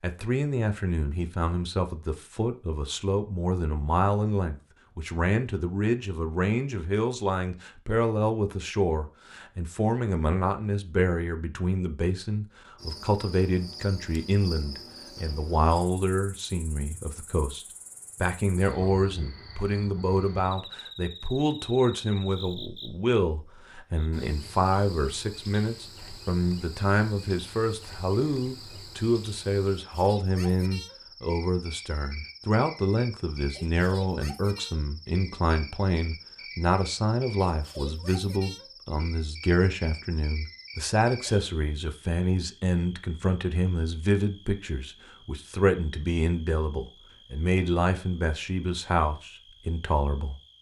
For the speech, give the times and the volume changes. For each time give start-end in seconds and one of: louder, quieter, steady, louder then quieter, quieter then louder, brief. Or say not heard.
0.0-50.4 steady.